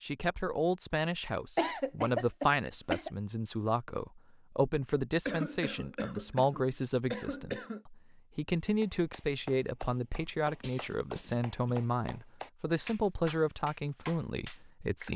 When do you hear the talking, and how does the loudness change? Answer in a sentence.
You can hear the talking from 0.0 to 15.1 s, at a steady volume.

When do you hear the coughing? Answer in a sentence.
You can hear the coughing from 1.6 to 3.1 s, from 5.2 to 7.8 s and from 10.6 to 11.8 s.